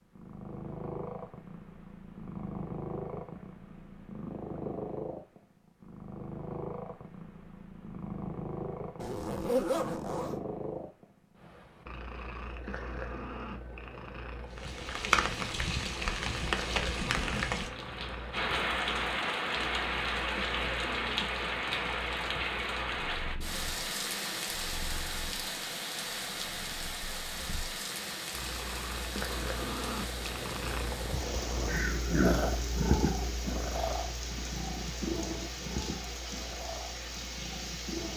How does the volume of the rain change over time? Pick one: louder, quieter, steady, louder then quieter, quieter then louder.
quieter.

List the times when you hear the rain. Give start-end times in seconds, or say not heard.
14.5-38.1.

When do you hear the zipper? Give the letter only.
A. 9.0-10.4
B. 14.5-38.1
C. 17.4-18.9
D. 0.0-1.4
A.